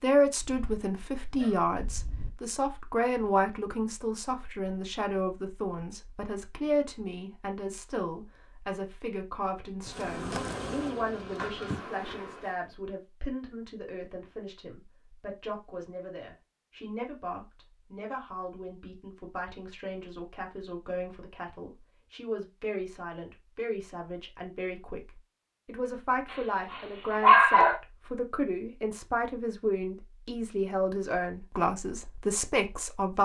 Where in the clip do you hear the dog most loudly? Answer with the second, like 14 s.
27 s.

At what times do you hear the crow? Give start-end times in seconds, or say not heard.
not heard.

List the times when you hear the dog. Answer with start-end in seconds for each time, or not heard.
0.4-2.3, 26.3-27.8.